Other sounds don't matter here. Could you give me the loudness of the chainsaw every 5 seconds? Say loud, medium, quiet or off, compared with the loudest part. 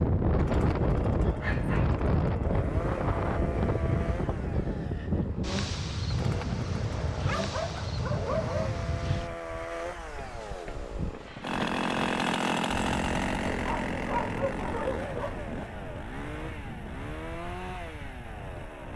medium, medium, loud, medium.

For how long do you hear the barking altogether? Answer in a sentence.
You can hear the barking for 4 seconds altogether.